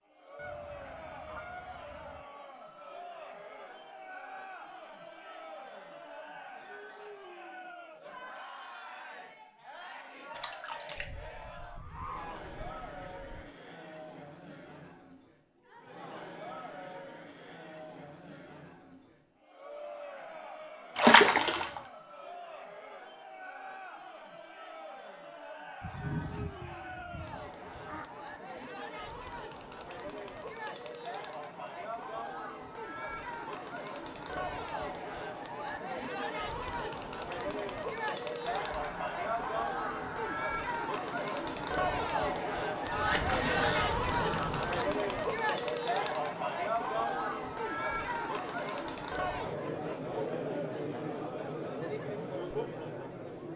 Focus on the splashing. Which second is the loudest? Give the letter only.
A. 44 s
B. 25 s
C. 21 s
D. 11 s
C.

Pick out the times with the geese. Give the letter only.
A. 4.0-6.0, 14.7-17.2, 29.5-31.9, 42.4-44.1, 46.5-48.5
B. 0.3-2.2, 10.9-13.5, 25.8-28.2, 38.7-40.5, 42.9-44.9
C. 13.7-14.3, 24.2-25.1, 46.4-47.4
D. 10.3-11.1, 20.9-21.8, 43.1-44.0
B.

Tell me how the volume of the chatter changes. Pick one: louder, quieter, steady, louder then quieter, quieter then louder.
louder.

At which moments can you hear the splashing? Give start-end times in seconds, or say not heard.
10.3-11.1, 20.9-21.8, 43.1-44.0.